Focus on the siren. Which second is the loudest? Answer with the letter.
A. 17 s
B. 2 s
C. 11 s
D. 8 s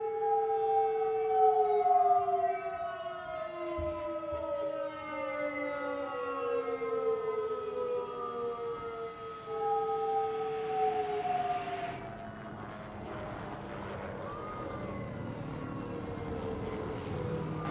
B.